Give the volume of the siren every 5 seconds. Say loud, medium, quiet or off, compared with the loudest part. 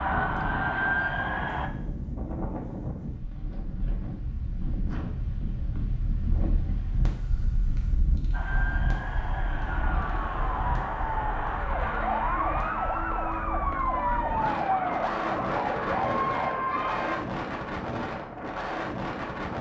loud, medium, loud, loud.